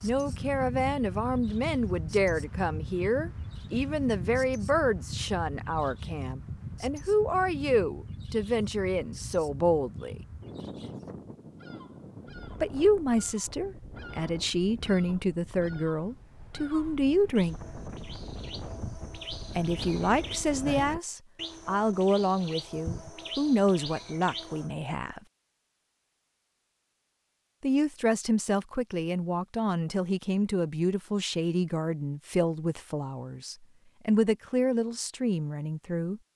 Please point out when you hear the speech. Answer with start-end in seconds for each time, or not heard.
0.0-10.2, 12.6-17.6, 19.6-25.2, 27.6-36.2.